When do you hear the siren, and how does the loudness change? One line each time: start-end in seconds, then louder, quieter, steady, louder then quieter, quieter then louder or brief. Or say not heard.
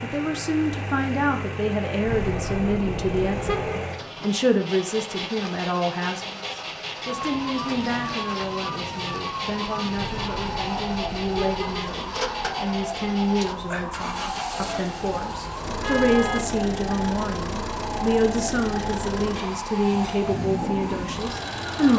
7.0-21.9 steady.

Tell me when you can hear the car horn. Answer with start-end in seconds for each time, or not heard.
2.0-3.8, 9.9-11.9, 15.8-16.4.